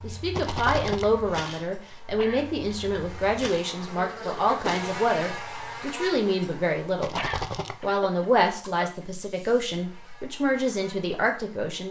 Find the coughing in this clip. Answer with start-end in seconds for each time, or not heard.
1.9-2.5, 7.2-9.1.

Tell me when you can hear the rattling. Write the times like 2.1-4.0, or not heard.
0.3-1.1, 7.0-7.8.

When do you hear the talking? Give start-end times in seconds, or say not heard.
0.0-7.2, 7.8-11.8.